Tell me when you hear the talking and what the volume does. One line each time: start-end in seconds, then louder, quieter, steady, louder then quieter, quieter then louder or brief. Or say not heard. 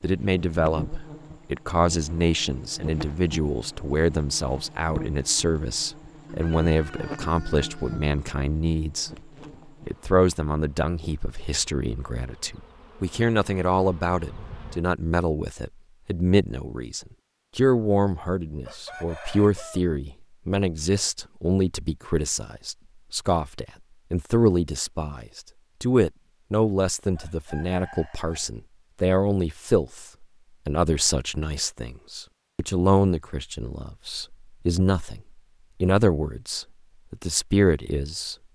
0.0-9.1 steady
9.8-35.2 steady
35.8-38.4 brief.